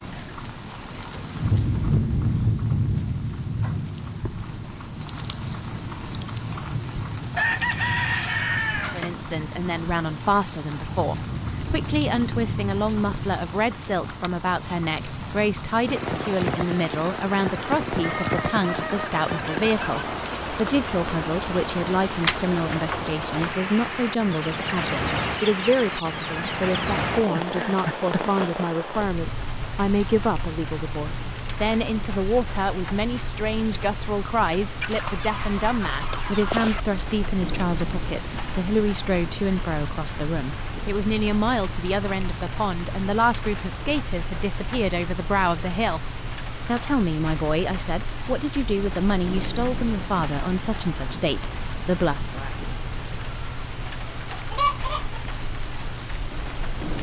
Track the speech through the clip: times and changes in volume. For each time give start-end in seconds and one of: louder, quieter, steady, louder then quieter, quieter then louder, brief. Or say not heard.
8.9-52.5 steady.